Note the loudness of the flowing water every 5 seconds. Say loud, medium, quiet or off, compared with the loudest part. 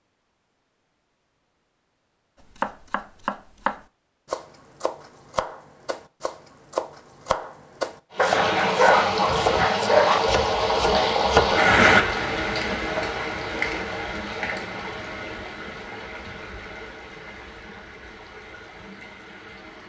off, loud, loud, quiet.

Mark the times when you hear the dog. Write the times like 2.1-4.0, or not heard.
8.2-10.2.